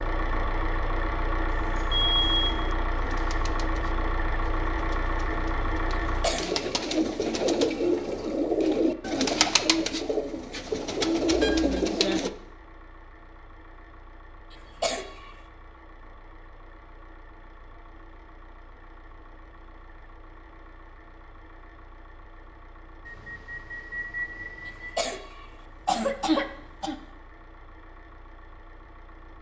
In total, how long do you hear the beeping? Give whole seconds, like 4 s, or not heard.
3 s.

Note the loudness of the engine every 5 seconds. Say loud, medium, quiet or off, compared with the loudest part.
loud, loud, quiet, quiet, quiet, quiet.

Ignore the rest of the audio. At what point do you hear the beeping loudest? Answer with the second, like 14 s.
2 s.